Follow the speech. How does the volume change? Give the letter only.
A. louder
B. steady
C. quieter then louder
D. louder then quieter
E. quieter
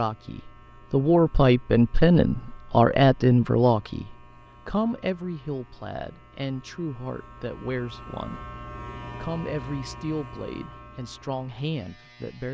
E.